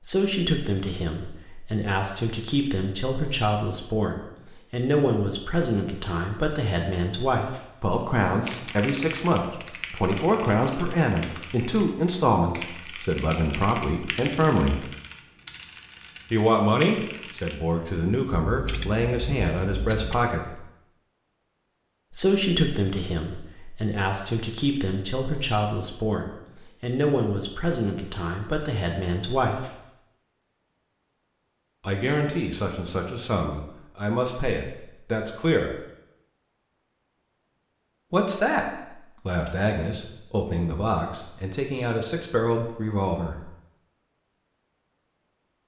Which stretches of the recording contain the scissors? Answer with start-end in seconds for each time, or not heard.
18.4-20.2.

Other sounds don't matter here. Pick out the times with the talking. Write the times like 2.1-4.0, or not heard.
0.1-14.8, 16.3-20.6, 22.1-29.8, 31.8-35.8, 38.1-38.6, 39.2-43.5.